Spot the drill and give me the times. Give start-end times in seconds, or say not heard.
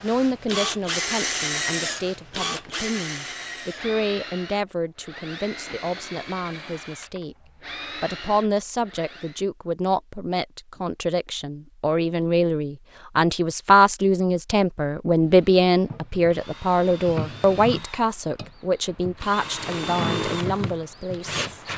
0.0-9.4, 15.2-21.7.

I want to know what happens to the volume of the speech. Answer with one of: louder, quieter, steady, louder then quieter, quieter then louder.
louder then quieter.